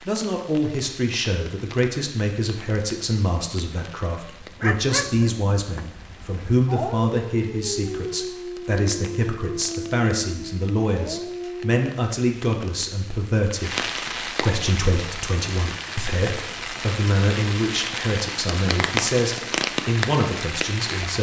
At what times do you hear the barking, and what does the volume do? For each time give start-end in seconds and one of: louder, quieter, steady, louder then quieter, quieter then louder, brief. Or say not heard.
4.2-11.8 steady.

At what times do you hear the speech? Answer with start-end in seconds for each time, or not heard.
0.0-21.1.